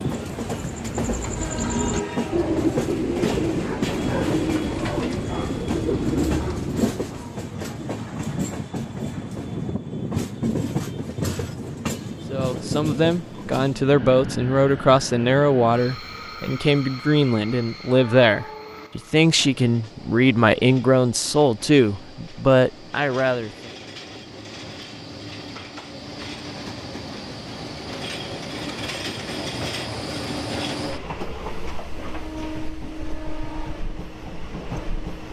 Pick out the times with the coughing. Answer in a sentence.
The coughing can't be heard in this clip.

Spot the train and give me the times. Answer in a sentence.
You can hear the train from 0.0 to 35.2 s.